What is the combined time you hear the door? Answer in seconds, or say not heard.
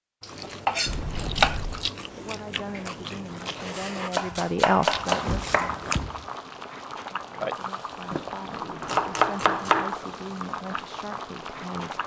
3 s.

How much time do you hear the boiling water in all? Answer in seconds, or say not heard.
7 s.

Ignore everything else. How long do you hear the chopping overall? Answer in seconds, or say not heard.
4 s.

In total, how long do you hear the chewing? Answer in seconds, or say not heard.
6 s.